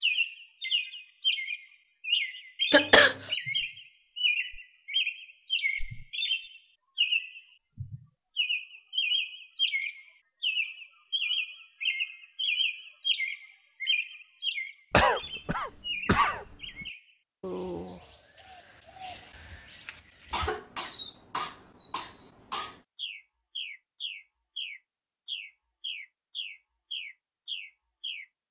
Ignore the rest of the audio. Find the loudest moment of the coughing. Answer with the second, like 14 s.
3 s.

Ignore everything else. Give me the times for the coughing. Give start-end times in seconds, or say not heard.
2.7-3.1, 14.9-16.4, 20.3-22.8.